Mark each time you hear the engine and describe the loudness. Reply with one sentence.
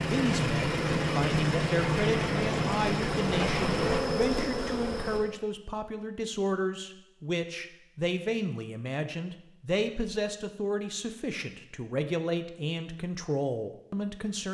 You can hear the engine from 0.0 to 4.0 s, at a steady volume.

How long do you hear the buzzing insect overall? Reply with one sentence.
The buzzing insect can be heard for 5 seconds in total.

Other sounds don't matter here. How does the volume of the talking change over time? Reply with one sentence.
The loudness of the talking stays about the same.